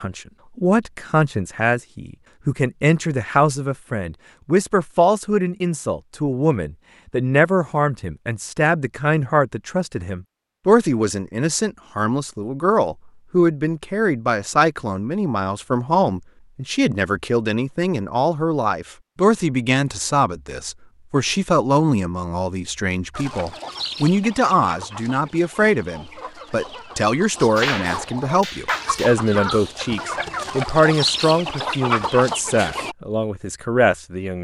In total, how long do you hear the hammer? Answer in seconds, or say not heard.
2 s.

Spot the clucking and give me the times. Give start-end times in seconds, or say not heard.
23.1-33.0.